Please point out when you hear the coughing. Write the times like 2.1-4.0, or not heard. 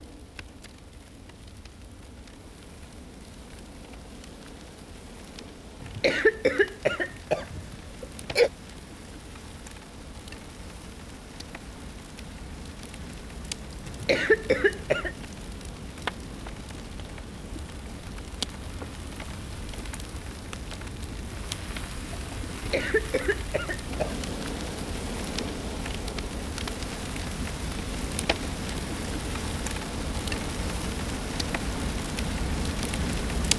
5.8-8.5, 13.8-15.1, 22.5-24.3.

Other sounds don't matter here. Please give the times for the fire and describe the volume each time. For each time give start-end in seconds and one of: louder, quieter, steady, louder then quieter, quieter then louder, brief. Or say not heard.
0.0-33.5 louder.